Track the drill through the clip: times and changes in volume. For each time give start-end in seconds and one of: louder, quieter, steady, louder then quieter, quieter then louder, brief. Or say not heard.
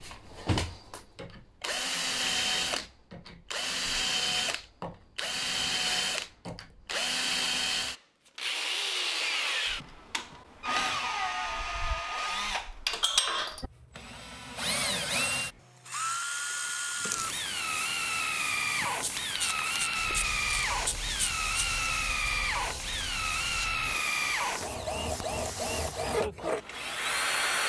0.0-27.6 steady.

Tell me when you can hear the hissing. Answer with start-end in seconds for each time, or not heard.
16.9-26.1.